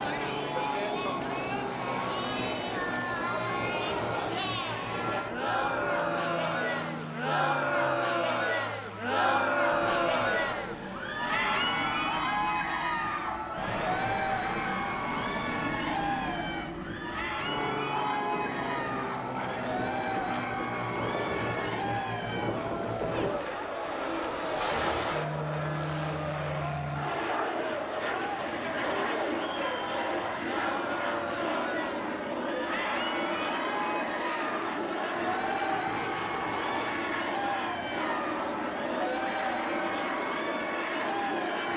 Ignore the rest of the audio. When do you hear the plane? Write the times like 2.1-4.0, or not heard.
0.0-41.7.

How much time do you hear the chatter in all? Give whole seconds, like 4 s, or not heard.
42 s.